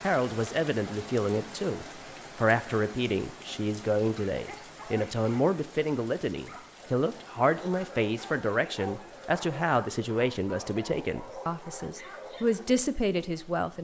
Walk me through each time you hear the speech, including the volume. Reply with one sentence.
You can hear the speech from 0.0 to 13.7 s, at a steady volume.